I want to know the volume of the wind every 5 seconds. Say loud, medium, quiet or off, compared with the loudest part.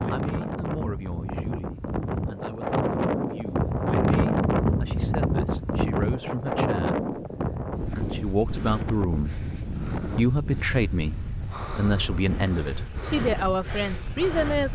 loud, loud, medium.